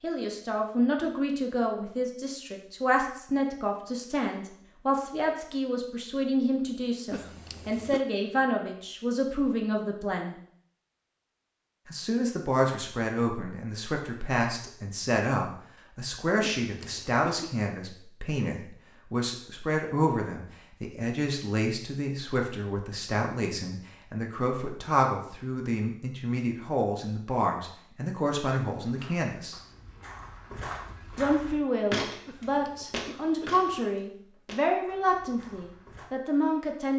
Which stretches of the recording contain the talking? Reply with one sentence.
The talking can be heard from 0.0 to 10.3 s, from 11.8 to 29.6 s and from 31.1 to 36.9 s.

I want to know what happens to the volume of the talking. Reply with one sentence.
The volume of the talking stays about the same.